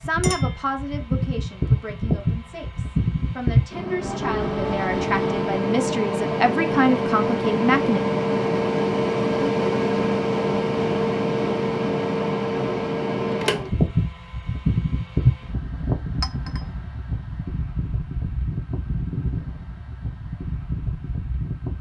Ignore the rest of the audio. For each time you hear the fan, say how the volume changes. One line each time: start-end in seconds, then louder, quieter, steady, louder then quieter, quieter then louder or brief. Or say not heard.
0.0-21.7 quieter.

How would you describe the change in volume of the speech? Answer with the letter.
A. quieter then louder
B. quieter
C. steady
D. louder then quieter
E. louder
A.